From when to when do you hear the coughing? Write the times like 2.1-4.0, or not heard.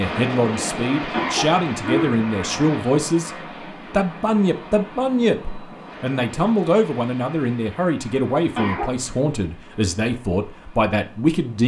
1.1-2.6, 8.6-9.2.